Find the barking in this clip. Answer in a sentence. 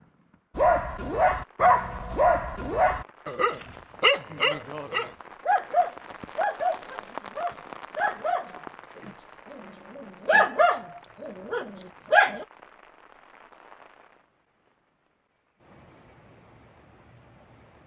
You can hear the barking from 0.6 to 12.4 s.